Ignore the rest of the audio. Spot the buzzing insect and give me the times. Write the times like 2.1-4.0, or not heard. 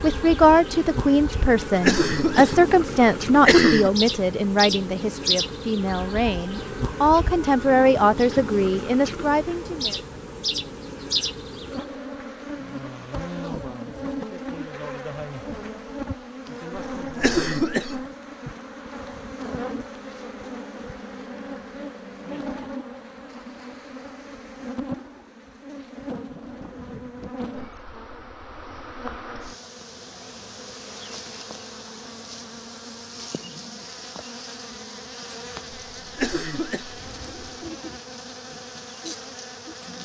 0.0-40.0.